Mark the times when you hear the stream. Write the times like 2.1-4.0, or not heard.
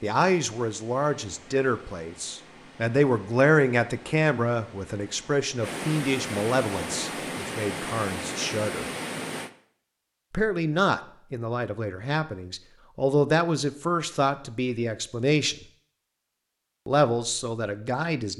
0.0-9.5.